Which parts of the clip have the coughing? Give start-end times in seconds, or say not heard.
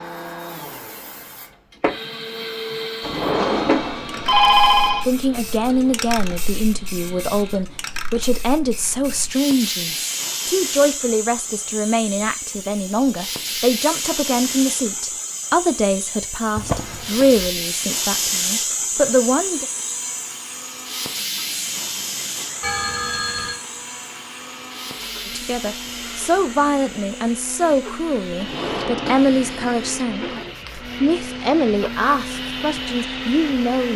not heard.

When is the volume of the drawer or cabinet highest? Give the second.
4 s.